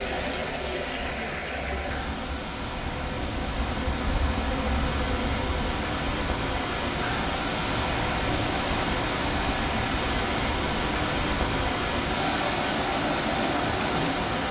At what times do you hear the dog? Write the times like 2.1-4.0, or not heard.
not heard.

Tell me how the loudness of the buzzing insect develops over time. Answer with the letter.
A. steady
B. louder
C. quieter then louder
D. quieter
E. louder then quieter
B.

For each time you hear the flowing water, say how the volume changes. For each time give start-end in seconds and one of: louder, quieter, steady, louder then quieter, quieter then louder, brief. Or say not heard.
0.0-14.4 louder.